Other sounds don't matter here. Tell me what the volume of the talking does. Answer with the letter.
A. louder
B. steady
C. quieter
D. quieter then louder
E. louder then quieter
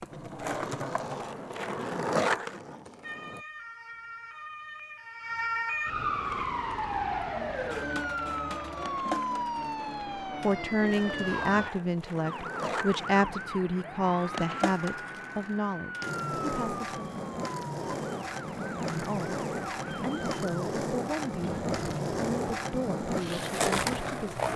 C.